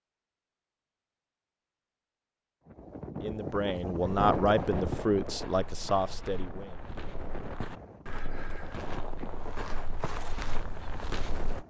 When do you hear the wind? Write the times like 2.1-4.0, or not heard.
2.6-11.6.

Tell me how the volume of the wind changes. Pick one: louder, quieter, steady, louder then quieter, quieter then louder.
quieter.